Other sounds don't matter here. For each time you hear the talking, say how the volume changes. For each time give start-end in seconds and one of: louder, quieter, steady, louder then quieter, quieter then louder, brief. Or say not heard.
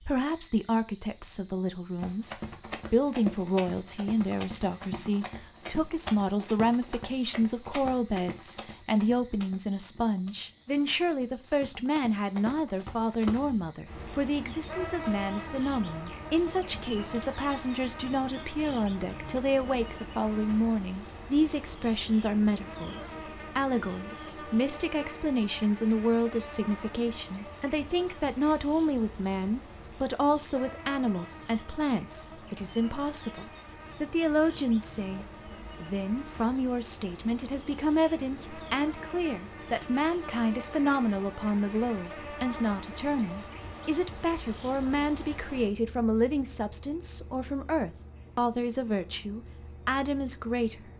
0.0-50.9 steady.